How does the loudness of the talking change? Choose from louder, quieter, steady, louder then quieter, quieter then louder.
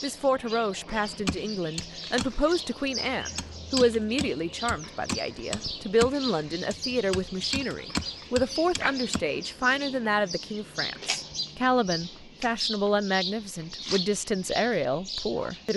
steady.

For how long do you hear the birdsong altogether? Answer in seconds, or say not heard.
16 s.